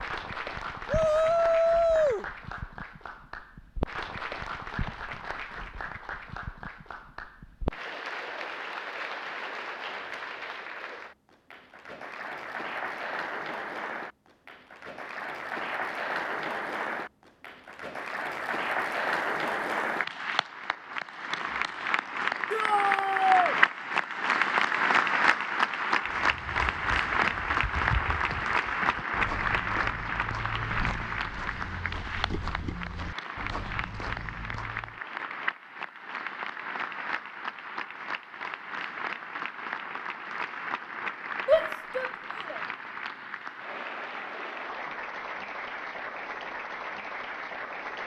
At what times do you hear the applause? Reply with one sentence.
The applause can be heard from 0.0 to 48.0 s.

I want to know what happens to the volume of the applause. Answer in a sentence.
The volume of the applause goes up, then down.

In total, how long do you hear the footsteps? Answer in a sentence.
The footsteps can be heard for 9 seconds in total.